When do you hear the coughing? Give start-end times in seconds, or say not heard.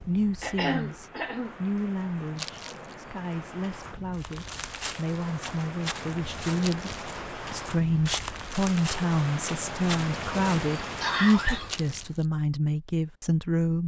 0.4-1.6, 11.0-11.7.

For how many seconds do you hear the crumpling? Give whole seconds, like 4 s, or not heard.
2 s.